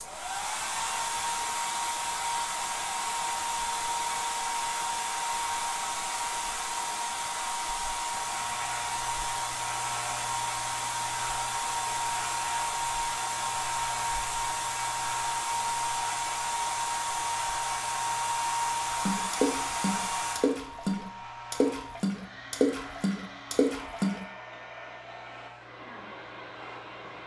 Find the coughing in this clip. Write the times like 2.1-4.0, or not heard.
not heard.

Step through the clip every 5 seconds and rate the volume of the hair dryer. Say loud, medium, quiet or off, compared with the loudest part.
loud, loud, loud, loud, medium, quiet.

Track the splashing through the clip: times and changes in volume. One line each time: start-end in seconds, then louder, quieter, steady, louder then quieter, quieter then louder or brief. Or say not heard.
18.9-24.2 steady.